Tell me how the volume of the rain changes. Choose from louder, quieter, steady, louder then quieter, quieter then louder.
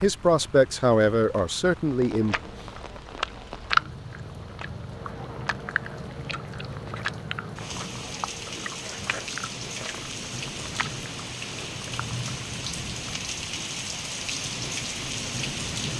louder.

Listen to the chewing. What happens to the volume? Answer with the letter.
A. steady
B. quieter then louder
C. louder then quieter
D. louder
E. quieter
E.